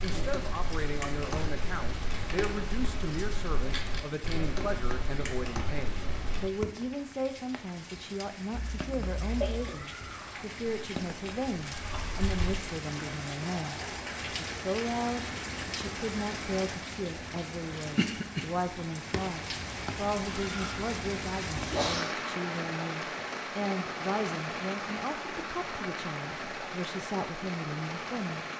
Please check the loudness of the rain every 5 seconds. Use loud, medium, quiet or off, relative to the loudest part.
medium, medium, loud, loud, loud, loud.